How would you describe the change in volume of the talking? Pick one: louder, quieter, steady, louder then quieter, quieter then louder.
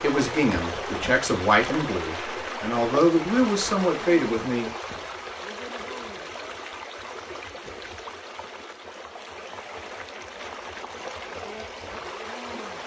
quieter then louder.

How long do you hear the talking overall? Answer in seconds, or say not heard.
5 s.